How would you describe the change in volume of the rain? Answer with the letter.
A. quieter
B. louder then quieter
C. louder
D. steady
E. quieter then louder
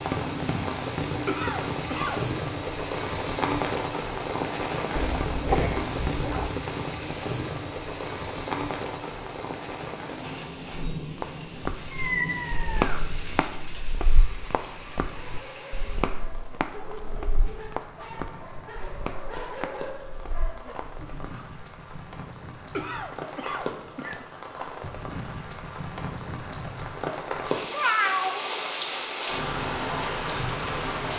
E.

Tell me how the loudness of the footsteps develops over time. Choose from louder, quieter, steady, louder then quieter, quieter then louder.
quieter.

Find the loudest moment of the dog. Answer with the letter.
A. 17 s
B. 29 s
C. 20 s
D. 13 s
C.